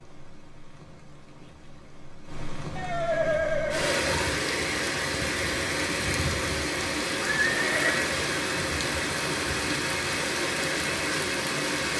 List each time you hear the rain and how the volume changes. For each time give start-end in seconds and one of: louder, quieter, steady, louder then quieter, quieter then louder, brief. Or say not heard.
0.0-11.9 louder.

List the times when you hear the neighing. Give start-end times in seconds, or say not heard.
2.8-4.2, 7.2-8.2.